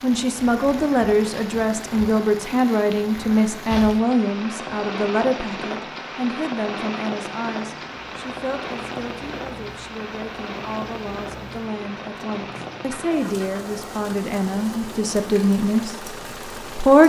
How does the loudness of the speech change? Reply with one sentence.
The volume of the speech goes down, then up.